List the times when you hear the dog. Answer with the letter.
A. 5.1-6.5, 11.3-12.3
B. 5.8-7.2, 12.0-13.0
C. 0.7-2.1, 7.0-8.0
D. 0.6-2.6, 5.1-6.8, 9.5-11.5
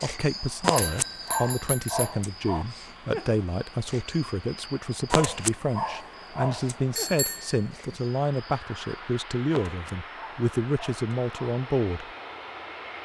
D.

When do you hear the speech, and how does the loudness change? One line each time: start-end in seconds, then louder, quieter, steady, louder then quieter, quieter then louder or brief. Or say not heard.
0.0-12.1 steady.